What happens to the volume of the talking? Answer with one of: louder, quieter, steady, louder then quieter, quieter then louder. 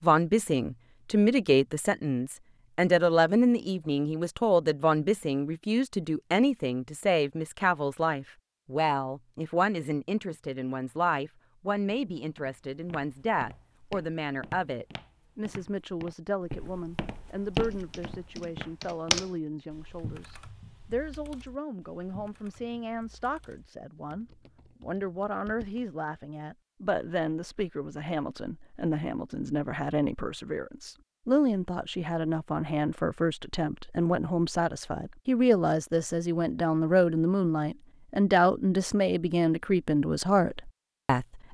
quieter then louder.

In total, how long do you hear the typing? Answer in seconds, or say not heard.
8 s.